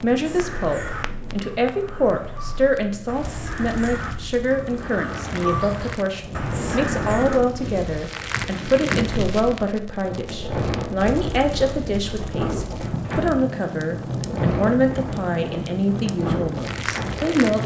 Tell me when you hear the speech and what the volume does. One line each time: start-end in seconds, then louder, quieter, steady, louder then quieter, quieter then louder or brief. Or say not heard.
0.0-17.6 steady.